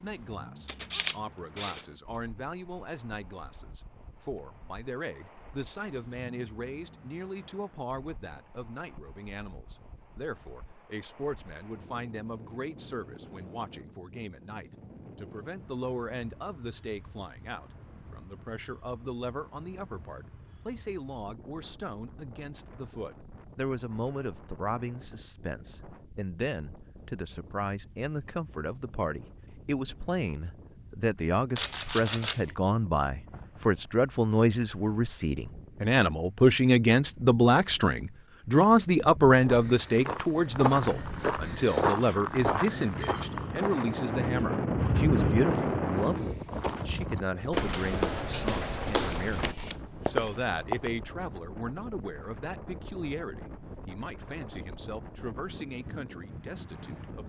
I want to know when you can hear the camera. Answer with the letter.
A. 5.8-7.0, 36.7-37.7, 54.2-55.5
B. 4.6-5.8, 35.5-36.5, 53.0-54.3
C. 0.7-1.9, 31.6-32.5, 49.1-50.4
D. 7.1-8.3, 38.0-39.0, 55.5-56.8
C.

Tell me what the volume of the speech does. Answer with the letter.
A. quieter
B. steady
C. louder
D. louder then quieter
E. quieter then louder
D.